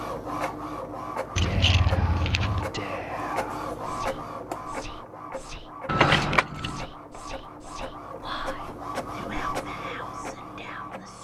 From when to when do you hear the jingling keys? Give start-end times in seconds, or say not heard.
1.4-2.7, 5.8-6.8.